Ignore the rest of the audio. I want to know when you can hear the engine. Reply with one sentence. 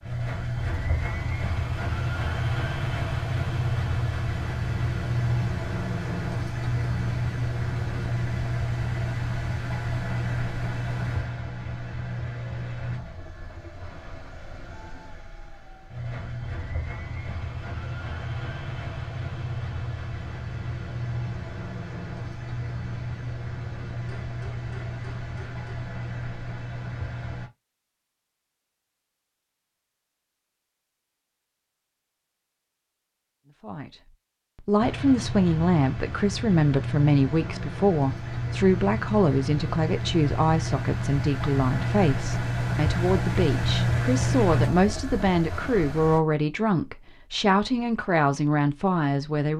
You can hear the engine from 0.0 to 27.5 s and from 34.8 to 46.2 s.